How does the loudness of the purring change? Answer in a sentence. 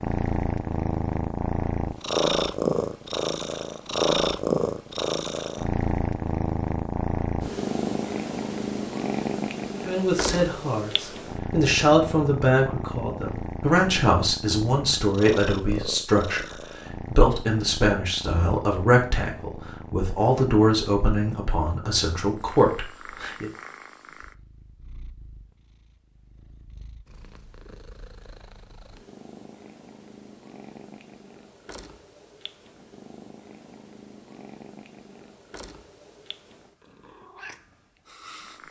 The loudness of the purring goes down.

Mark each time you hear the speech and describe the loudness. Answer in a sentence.
You can hear the speech from 9.8 to 23.5 s, at a steady volume.